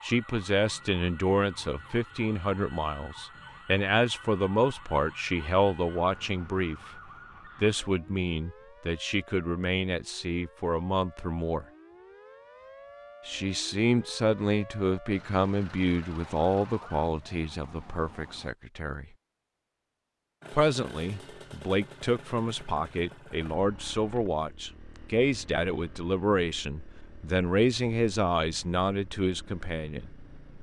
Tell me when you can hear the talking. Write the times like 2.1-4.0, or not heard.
0.0-6.9, 7.6-11.7, 13.2-19.1, 20.5-30.1.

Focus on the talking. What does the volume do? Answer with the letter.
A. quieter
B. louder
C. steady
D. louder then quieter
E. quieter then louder
C.